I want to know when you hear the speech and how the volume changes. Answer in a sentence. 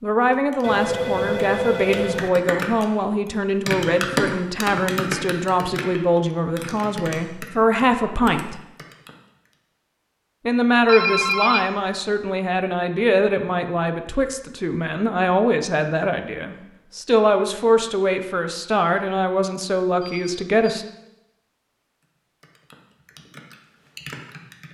You can hear the speech from 0.0 to 8.6 s, at a steady volume; and from 10.4 to 20.9 s, at a steady volume.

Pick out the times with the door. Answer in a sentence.
You can't hear the door here.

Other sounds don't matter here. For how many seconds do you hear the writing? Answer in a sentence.
The writing can't be heard in this clip.